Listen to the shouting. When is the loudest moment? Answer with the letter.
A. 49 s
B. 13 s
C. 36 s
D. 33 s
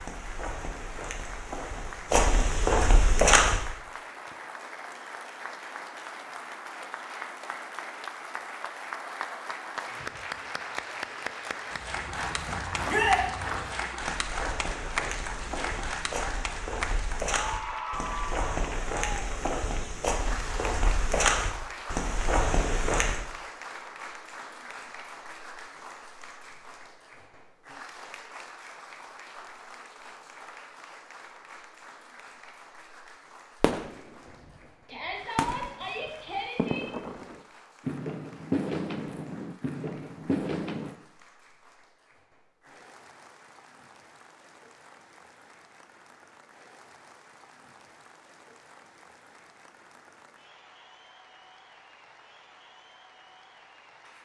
B.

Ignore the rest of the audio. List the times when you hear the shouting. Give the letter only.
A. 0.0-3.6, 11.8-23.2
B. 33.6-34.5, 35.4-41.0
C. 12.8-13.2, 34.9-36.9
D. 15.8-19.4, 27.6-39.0
C.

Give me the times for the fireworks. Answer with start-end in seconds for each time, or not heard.
33.6-34.5, 35.4-41.0.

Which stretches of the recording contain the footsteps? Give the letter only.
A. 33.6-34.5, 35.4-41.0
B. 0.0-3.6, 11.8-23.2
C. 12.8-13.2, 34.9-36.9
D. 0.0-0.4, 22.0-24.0
B.